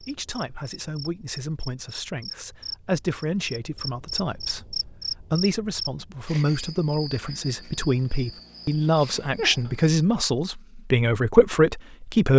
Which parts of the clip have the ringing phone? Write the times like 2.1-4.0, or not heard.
not heard.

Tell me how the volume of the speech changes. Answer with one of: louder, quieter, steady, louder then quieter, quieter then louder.
louder.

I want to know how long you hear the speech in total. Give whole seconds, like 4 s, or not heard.
12 s.